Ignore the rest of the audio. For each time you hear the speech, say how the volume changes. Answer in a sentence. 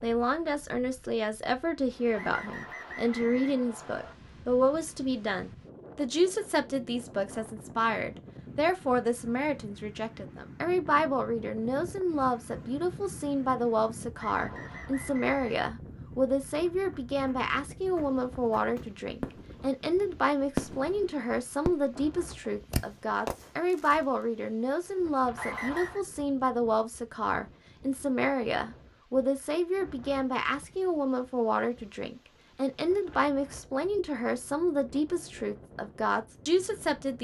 You can hear the speech from 0.0 to 37.1 s, at a steady volume.